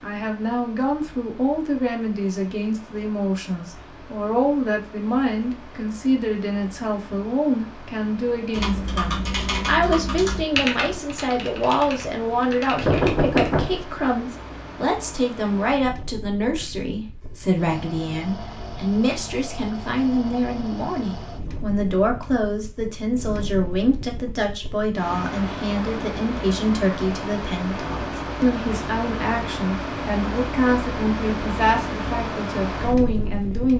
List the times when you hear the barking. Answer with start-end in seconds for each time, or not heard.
not heard.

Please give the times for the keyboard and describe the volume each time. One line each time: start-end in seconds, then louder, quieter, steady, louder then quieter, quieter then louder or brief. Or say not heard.
8.5-13.6 quieter.